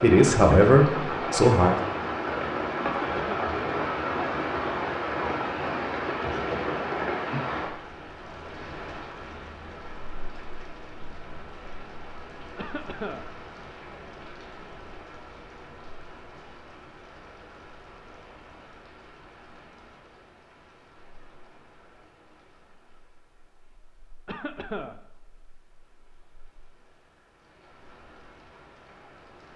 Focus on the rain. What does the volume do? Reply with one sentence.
The volume of the rain goes down.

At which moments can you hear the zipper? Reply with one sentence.
The zipper can't be heard in this clip.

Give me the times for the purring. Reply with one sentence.
The purring can't be heard in this clip.